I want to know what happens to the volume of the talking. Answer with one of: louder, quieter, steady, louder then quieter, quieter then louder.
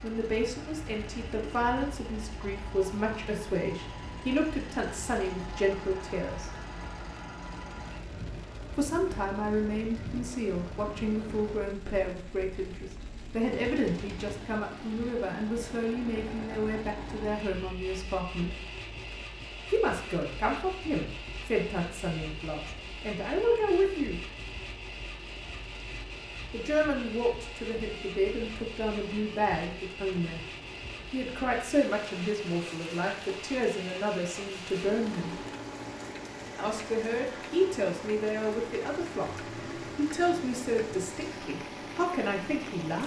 steady.